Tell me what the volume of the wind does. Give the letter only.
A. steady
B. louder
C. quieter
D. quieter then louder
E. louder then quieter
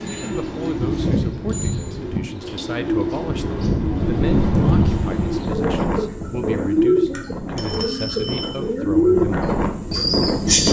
D.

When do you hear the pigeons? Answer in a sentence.
You can hear the pigeons from 0.0 to 10.6 s.